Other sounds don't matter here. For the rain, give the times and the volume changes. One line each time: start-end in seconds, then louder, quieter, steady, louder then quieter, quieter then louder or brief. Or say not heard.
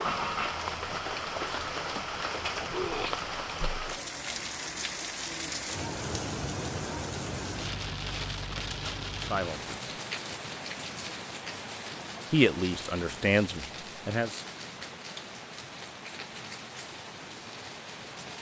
0.0-18.3 quieter.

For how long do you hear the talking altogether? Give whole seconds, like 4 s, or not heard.
3 s.